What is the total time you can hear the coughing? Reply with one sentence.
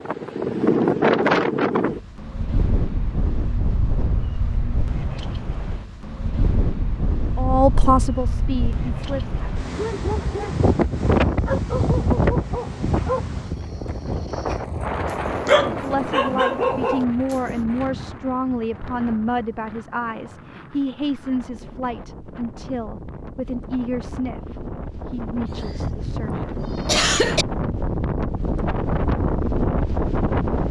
The coughing can be heard for 2 seconds in total.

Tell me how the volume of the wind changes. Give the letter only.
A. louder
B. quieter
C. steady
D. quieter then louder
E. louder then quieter
D.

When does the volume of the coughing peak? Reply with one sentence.
The volume of the coughing peaks at 27 seconds.